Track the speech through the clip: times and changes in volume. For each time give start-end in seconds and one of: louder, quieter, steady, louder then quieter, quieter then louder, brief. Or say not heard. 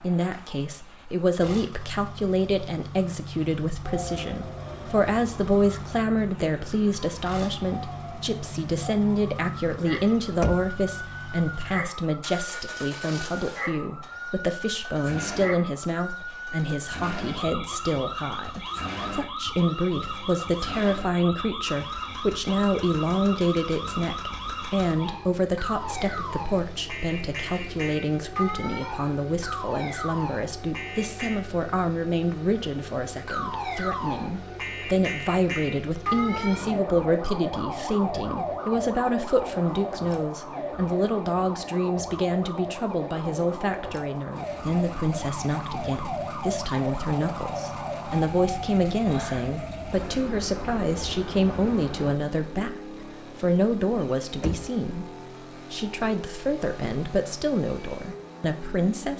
0.0-59.1 steady.